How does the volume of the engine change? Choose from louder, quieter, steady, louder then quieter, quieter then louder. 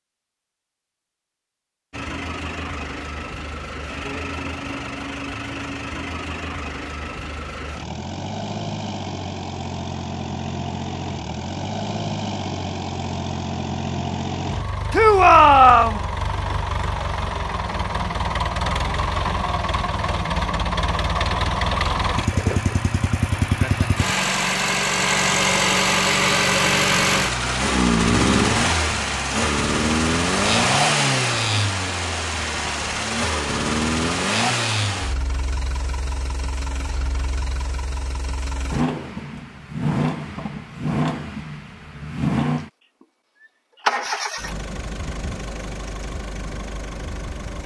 louder then quieter.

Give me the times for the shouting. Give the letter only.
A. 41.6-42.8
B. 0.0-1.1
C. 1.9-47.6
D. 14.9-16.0
D.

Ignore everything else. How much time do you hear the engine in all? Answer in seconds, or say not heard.
46 s.